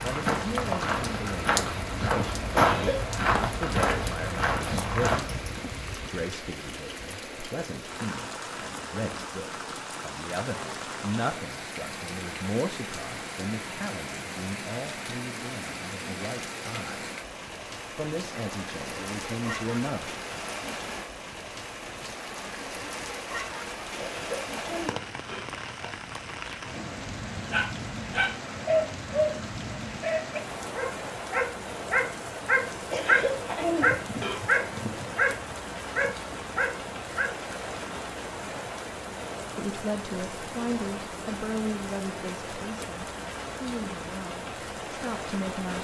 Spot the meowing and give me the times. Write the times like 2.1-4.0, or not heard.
not heard.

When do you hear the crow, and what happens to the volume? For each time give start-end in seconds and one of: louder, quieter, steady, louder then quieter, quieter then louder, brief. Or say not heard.
not heard.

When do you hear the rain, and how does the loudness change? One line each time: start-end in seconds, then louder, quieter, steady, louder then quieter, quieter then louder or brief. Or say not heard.
0.0-45.7 steady.